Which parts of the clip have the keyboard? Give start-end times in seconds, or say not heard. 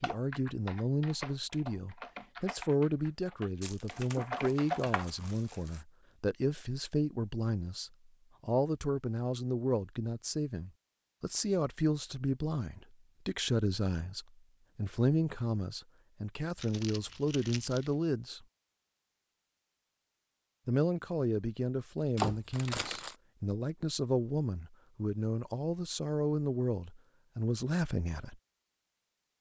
0.0-5.1.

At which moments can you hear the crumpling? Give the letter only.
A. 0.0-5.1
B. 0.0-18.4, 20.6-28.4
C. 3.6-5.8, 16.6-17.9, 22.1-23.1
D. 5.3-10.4
C.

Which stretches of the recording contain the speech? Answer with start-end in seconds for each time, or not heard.
0.0-18.4, 20.6-28.4.